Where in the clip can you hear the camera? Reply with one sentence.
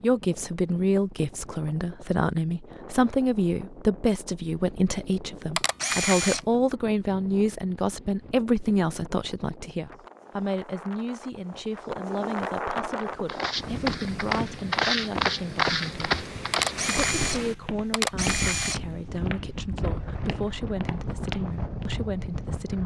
You can hear the camera from 5.5 to 6.4 s and from 16.5 to 18.9 s.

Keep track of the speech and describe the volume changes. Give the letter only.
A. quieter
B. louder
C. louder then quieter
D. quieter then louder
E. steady
A.